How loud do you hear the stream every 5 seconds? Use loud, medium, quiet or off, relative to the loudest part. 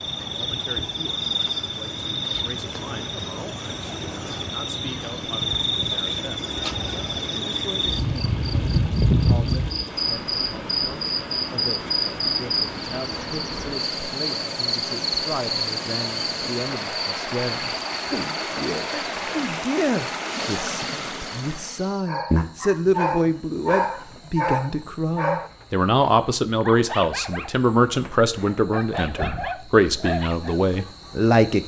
medium, medium, loud, loud, loud, off, off.